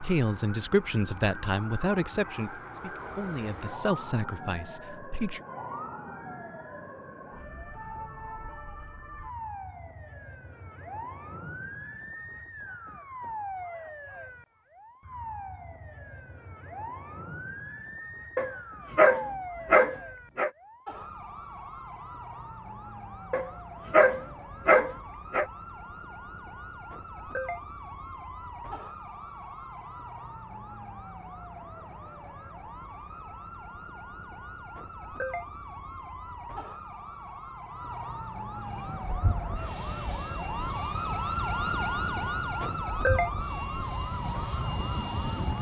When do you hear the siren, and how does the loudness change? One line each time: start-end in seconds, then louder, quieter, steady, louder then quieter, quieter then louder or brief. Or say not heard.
0.0-45.5 louder.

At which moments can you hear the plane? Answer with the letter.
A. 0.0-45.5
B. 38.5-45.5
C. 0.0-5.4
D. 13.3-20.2
B.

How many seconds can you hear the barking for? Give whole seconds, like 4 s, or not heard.
4 s.